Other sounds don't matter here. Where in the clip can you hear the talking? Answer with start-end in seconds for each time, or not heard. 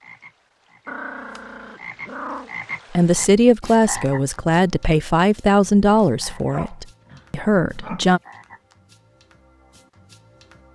2.9-8.2.